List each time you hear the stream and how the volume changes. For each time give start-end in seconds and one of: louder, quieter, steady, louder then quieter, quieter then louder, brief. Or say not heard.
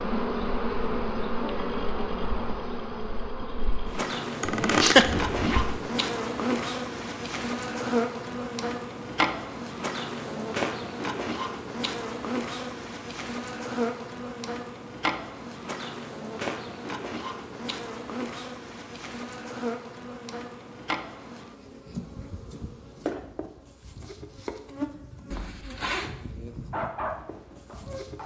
not heard.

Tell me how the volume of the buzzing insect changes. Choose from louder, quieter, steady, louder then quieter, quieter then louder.
quieter.